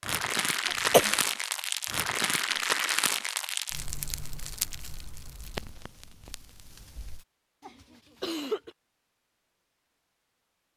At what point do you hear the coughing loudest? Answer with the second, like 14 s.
1 s.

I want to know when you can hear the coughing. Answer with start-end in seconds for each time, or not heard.
0.7-1.1, 7.6-8.7.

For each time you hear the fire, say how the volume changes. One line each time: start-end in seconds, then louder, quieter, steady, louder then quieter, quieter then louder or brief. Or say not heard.
0.0-7.2 quieter.